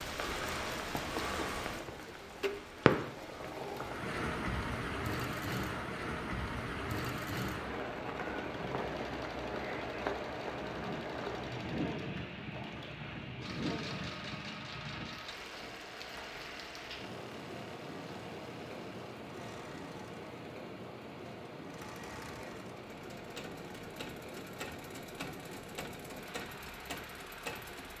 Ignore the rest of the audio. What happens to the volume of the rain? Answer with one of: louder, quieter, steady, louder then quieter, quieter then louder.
quieter.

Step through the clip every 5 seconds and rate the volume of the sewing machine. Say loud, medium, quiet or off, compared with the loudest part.
loud, loud, loud, medium, medium, loud.